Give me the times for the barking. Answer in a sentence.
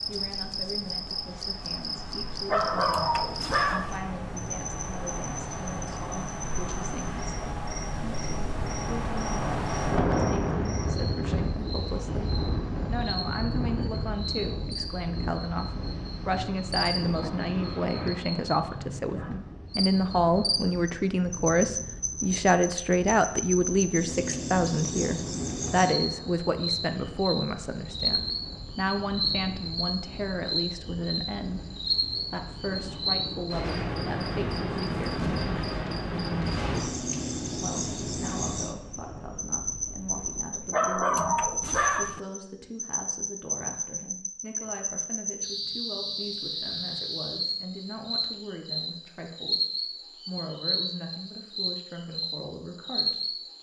The barking can be heard from 2.4 to 4.0 s and from 40.6 to 42.2 s.